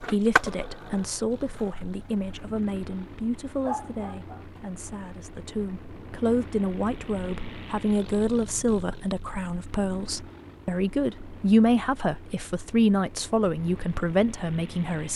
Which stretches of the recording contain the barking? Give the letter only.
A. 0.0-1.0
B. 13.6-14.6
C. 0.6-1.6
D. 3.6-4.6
D.